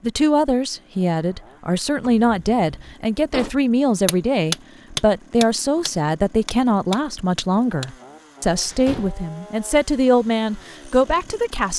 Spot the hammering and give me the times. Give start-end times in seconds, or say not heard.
4.0-7.9.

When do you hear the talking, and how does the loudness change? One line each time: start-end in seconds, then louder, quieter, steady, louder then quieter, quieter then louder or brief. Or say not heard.
0.0-11.7 steady.